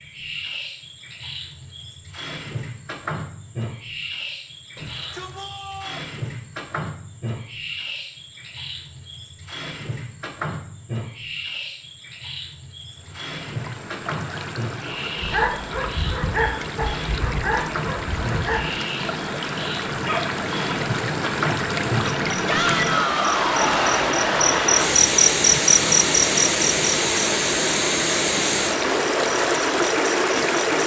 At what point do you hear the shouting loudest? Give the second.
23 s.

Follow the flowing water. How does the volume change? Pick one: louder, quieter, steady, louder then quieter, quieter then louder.
louder.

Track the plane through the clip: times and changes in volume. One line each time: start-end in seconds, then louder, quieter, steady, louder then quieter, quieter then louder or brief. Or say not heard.
not heard.